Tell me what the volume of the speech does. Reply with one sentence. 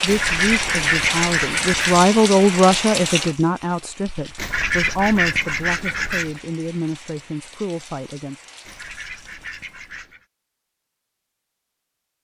The volume of the speech goes up, then down.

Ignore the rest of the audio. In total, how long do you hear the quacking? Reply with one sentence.
You can hear the quacking for 6 seconds altogether.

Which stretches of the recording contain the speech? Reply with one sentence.
The speech can be heard from 0.0 to 8.4 s.